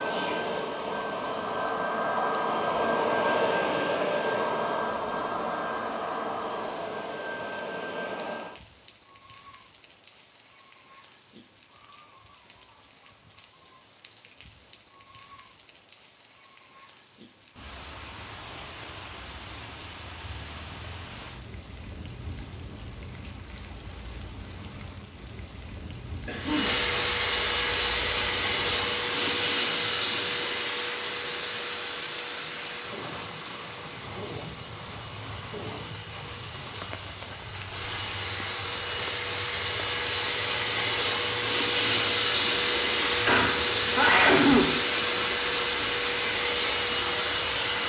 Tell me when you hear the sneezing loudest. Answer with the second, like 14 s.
44 s.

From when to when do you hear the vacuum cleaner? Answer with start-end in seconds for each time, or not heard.
0.0-8.6, 26.4-47.8.